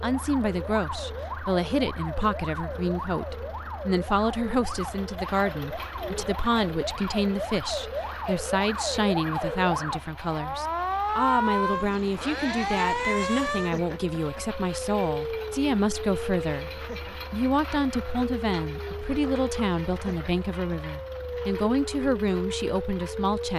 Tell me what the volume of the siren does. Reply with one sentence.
The volume of the siren goes up, then down.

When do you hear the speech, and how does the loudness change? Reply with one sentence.
The speech can be heard from 0.0 to 23.5 s, at a steady volume.